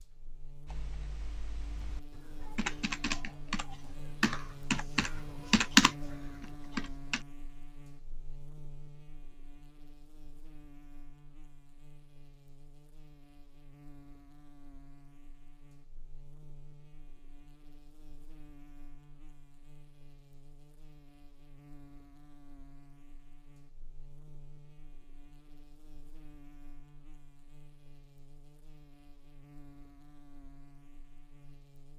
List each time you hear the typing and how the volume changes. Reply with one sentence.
You can hear the typing from 0.7 to 7.2 s, getting louder.